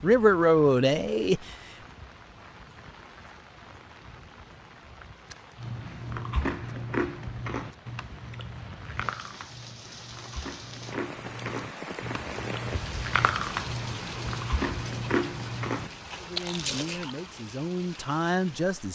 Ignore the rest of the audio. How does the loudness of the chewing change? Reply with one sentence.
The volume of the chewing goes down, then up.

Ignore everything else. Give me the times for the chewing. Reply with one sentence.
You can hear the chewing from 5.5 to 17.1 s.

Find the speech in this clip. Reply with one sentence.
You can hear the speech from 0.0 to 1.6 s and from 16.1 to 18.9 s.